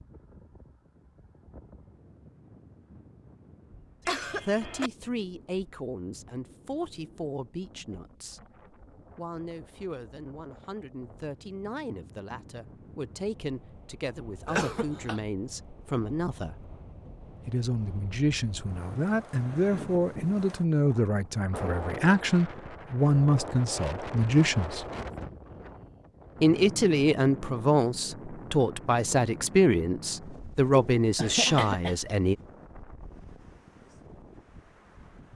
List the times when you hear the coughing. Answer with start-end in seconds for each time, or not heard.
4.0-4.9, 14.4-15.2, 30.9-32.1.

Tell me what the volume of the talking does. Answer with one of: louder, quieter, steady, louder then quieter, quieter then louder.
louder.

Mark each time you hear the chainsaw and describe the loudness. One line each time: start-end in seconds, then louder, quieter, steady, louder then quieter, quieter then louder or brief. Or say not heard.
not heard.